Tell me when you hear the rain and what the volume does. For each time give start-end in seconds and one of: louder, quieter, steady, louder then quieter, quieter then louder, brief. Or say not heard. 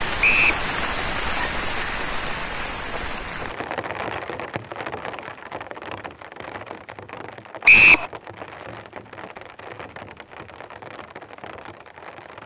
0.0-12.4 quieter.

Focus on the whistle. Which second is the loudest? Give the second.
8 s.